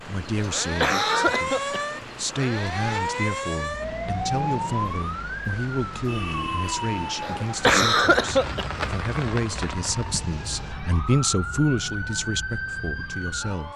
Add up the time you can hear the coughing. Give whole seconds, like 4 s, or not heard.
3 s.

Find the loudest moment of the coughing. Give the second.
8 s.